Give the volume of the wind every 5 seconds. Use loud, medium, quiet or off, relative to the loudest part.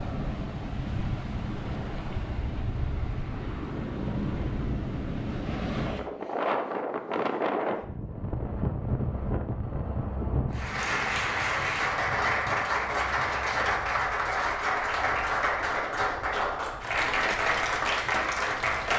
loud, loud, medium, quiet.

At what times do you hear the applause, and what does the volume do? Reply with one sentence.
The applause can be heard from 10.4 to 18.9 s, at a steady volume.